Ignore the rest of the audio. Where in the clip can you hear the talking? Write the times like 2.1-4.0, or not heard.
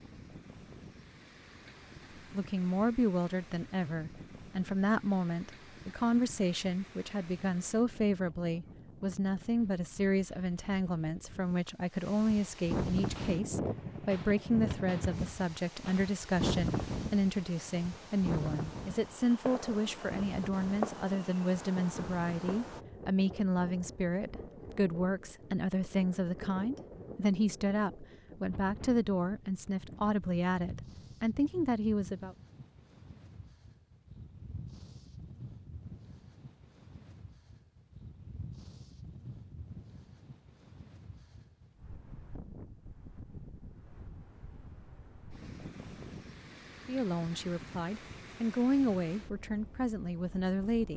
2.3-32.4, 46.9-50.9.